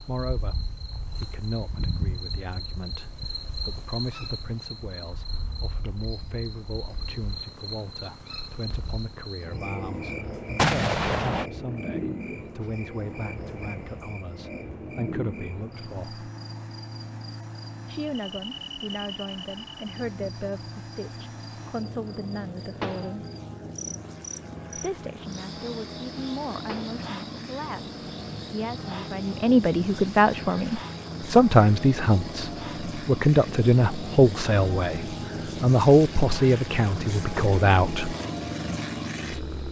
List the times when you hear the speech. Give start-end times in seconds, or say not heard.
0.0-16.2, 17.9-23.2, 24.8-38.1.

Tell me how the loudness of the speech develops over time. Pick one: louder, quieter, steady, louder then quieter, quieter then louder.
louder.